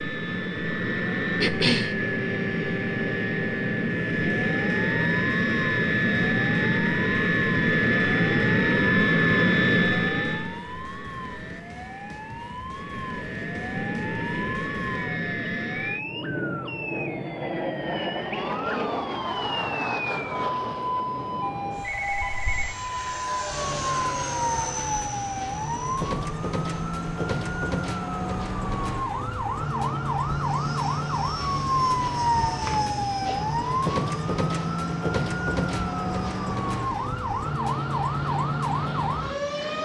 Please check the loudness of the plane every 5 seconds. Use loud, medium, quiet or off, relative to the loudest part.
medium, loud, medium, medium, quiet, quiet, quiet, quiet.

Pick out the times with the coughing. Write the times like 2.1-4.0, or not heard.
1.4-1.9, 32.5-33.5.